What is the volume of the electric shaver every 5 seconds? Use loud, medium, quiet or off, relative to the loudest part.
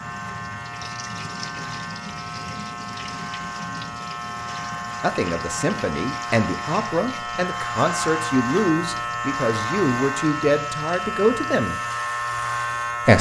medium, loud, loud.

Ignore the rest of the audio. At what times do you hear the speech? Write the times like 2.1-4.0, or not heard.
5.0-11.8.